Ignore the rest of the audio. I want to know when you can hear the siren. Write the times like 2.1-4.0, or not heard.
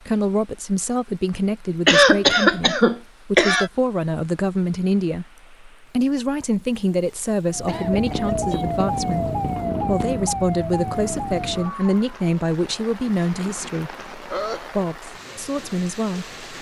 7.5-12.3.